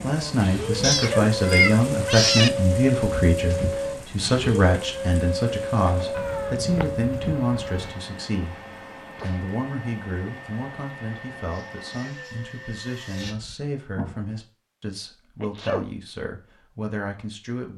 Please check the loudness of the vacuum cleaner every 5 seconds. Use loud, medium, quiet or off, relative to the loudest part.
loud, loud, quiet, off.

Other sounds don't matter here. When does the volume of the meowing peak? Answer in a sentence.
The loudest moment of the meowing is at 2 seconds.